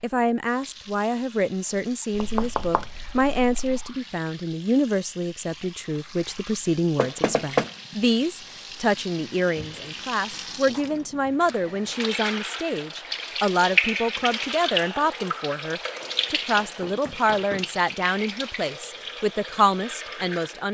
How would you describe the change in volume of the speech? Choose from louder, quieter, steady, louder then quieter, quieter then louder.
steady.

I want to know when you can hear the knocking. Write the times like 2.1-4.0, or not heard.
2.1-3.8, 7.0-7.8, 16.6-17.7.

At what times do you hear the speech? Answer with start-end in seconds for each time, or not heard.
0.0-20.6.